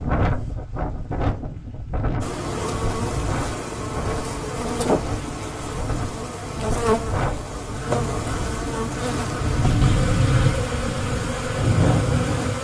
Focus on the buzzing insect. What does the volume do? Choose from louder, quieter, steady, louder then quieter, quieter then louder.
steady.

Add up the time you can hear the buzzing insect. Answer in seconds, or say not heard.
10 s.